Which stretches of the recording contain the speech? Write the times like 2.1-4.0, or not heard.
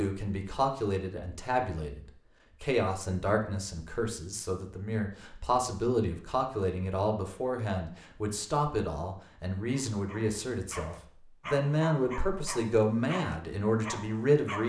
0.0-14.6.